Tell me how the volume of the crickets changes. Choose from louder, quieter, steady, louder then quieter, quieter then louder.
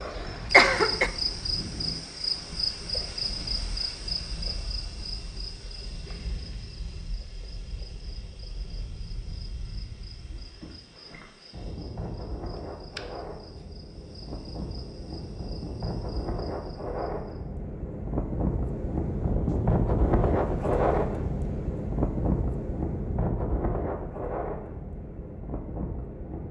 quieter.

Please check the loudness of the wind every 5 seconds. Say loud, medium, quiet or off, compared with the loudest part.
quiet, quiet, quiet, loud, loud, medium.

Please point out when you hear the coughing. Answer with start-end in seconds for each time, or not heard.
0.5-1.1.